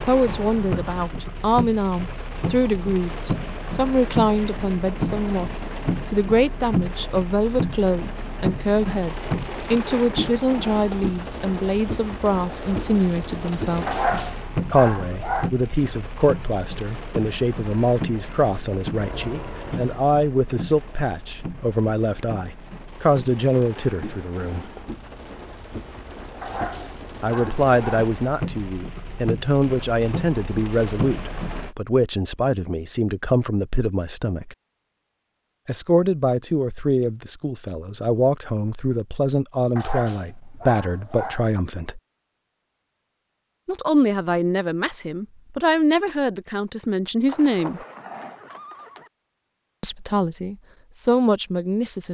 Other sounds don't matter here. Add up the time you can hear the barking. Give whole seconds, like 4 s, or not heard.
5 s.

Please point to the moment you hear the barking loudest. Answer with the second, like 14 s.
14 s.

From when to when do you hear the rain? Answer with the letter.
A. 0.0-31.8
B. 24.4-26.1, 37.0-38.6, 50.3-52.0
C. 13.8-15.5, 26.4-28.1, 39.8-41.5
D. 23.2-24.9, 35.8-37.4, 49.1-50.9
A.